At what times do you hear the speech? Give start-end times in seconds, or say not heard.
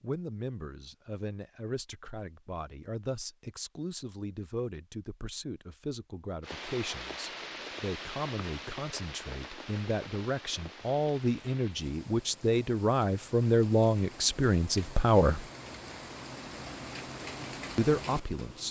0.0-15.4, 17.8-18.6.